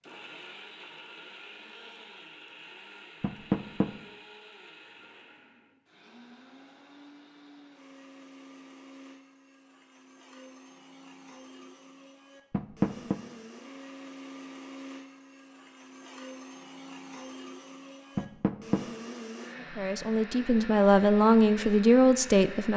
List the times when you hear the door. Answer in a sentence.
The door can be heard from 3.2 to 3.9 s, from 12.5 to 13.2 s and from 18.1 to 18.9 s.